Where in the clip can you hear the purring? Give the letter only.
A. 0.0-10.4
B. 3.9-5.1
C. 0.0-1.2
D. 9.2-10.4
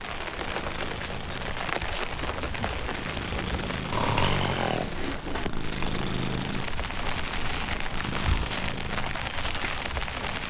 A.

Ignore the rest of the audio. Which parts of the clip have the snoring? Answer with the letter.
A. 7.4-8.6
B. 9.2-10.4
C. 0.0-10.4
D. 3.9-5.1
D.